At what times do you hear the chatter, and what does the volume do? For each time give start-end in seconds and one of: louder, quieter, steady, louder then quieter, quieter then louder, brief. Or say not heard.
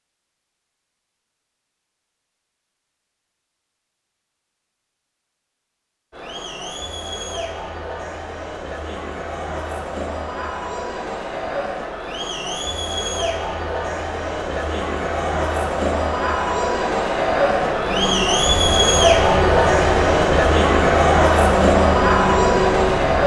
6.1-23.2 louder.